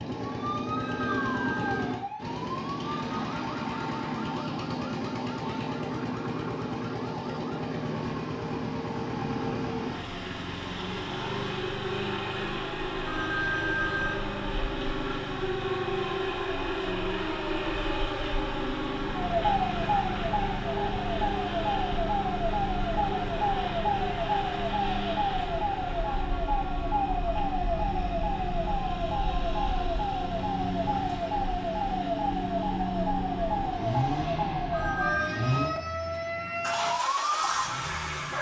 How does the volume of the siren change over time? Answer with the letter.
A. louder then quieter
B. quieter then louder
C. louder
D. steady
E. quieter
C.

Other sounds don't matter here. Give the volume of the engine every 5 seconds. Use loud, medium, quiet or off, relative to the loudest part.
loud, loud, loud, loud, loud, medium, loud, loud.